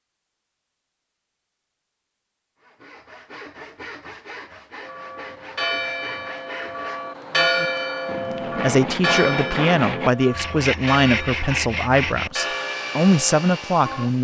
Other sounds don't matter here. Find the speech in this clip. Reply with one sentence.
The speech can be heard from 8.2 to 14.1 s.